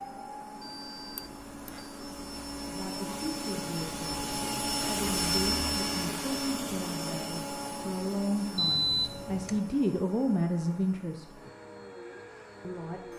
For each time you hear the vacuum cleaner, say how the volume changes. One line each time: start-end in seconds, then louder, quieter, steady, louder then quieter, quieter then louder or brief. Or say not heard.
0.0-13.1 louder then quieter.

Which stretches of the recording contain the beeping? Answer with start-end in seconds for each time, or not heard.
0.6-1.9, 8.6-9.6.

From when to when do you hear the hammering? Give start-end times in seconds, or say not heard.
not heard.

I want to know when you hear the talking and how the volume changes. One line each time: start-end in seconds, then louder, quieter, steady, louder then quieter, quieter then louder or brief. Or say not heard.
2.6-4.2 brief
4.8-11.2 louder
12.6-13.0 brief.